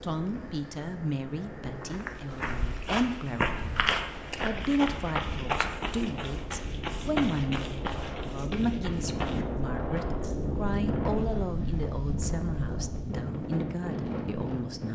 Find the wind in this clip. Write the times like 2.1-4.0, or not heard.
0.0-14.9.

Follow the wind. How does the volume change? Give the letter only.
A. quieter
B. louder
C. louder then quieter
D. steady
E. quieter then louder
B.